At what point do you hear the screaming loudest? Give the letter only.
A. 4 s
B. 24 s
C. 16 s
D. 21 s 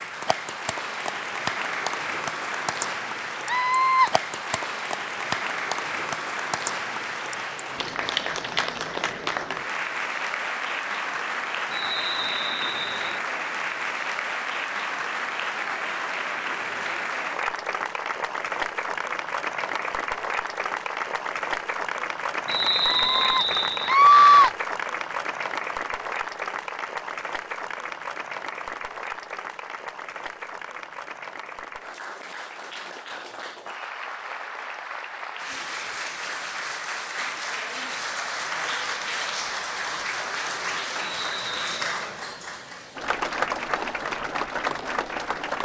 B.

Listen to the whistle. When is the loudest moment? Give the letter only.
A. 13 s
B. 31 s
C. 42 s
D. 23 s
D.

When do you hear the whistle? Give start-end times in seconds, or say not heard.
11.7-13.2, 22.4-23.9, 41.0-41.9.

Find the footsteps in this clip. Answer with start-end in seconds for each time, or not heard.
not heard.